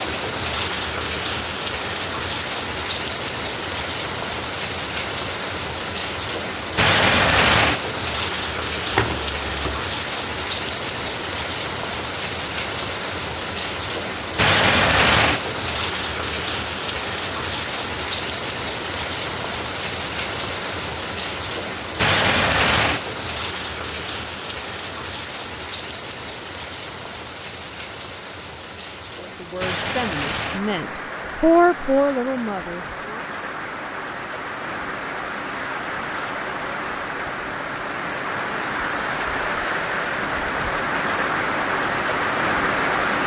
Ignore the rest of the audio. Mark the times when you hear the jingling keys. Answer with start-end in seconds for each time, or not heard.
8.9-9.8.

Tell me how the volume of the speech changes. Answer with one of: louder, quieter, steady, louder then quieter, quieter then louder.
louder then quieter.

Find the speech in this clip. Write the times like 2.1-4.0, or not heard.
29.1-33.2.